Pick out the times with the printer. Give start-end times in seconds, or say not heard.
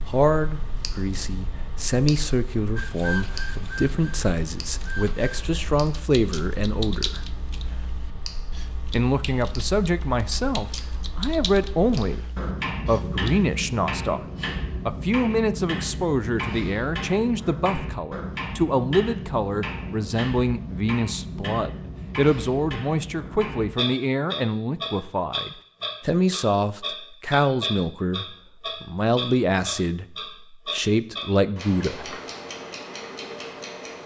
2.8-5.5.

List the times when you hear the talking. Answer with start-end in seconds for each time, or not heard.
0.1-7.3, 8.9-14.2, 14.8-32.2.